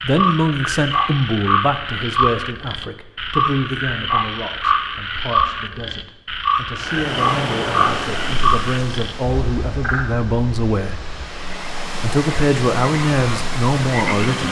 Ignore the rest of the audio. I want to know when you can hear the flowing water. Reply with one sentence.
The flowing water can be heard from 6.8 to 14.4 s.